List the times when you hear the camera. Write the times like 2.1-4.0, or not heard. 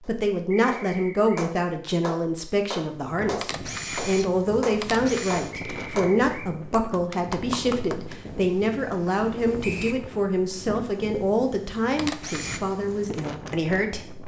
3.4-5.5, 11.9-12.6.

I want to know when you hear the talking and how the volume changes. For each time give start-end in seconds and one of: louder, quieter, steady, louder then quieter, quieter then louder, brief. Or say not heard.
0.1-14.2 steady.